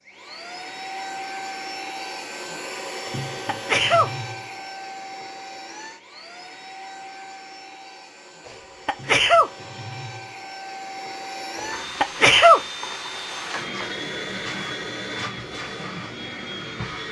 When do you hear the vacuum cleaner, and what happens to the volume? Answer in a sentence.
You can hear the vacuum cleaner from 0.0 to 17.0 s, getting quieter then louder.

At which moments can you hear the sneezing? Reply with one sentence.
The sneezing can be heard from 3.0 to 4.1 s, from 8.4 to 9.5 s and from 11.6 to 12.6 s.